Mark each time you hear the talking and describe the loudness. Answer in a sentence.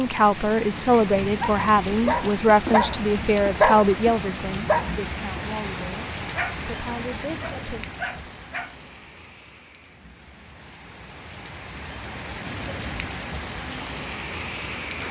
You can hear the talking from 0.0 to 6.0 s, getting quieter; and briefly from 6.7 to 7.8 s.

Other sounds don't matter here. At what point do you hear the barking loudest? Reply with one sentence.
The loudest moment of the barking is at 4 seconds.